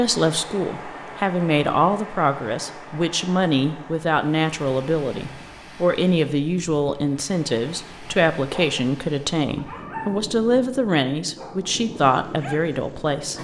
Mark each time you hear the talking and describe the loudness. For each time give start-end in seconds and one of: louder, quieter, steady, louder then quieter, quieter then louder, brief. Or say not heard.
0.0-13.3 steady.